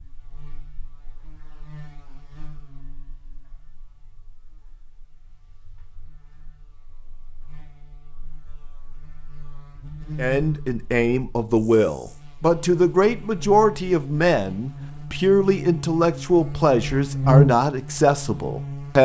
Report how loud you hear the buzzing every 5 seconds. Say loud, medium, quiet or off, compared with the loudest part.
quiet, quiet, quiet, loud.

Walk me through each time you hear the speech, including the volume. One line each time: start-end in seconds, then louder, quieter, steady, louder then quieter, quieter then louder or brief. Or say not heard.
10.2-19.0 steady.